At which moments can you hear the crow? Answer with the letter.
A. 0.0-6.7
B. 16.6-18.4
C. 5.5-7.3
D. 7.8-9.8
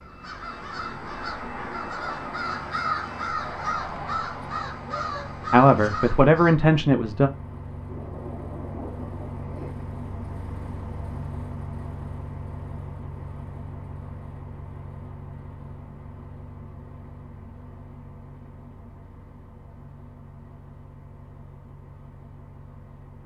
A.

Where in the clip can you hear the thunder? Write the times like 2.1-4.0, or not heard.
7.8-9.8.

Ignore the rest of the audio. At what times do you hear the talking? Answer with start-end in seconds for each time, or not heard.
5.5-7.3.